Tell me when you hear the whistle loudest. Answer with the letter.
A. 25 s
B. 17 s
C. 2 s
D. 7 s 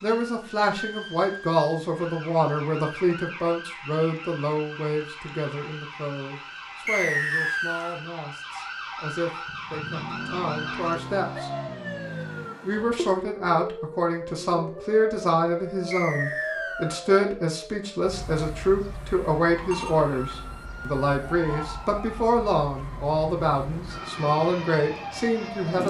D.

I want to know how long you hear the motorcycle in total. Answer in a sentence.
You can hear the motorcycle for 3 seconds altogether.